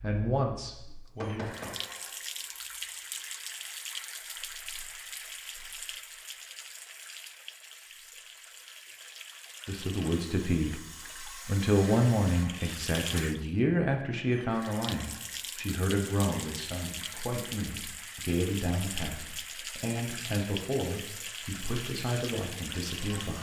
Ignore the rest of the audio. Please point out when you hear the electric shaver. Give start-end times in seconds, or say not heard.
not heard.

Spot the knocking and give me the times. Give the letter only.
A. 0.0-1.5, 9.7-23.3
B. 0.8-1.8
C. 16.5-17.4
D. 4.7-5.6
B.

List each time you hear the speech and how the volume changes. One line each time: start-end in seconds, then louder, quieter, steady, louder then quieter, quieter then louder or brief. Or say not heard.
0.0-1.5 brief
9.7-23.3 quieter.